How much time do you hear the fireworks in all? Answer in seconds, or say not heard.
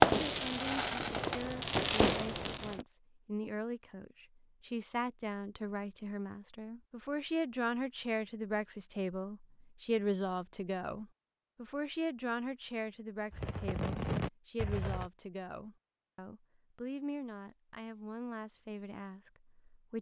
5 s.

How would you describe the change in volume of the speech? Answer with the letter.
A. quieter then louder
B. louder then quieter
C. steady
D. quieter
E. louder
B.